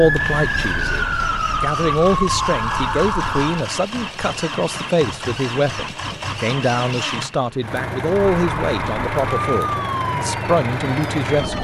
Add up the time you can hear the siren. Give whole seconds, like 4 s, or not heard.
7 s.